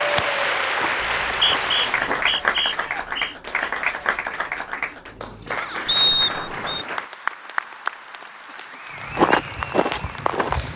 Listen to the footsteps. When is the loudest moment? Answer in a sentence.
The volume of the footsteps peaks at 9 seconds.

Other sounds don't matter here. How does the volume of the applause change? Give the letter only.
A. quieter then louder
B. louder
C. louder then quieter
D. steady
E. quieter
E.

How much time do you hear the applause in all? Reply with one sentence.
The applause can be heard for 11 seconds in total.